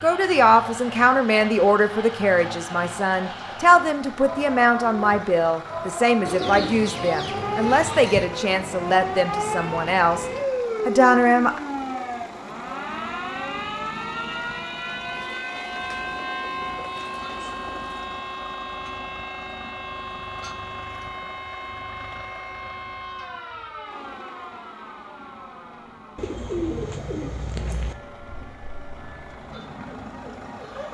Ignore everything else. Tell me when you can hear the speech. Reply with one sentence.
The speech can be heard from 0.0 to 10.2 s and from 10.8 to 11.6 s.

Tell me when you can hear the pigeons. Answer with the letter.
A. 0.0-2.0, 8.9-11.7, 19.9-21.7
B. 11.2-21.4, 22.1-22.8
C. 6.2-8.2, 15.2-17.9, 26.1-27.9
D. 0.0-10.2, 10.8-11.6
C.